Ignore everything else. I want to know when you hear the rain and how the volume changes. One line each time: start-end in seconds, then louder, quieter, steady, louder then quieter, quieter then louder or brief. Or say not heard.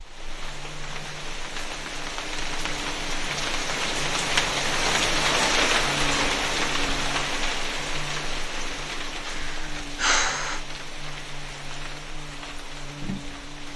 0.0-13.7 louder then quieter.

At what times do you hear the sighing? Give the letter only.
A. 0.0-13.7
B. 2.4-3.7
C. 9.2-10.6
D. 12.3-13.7
C.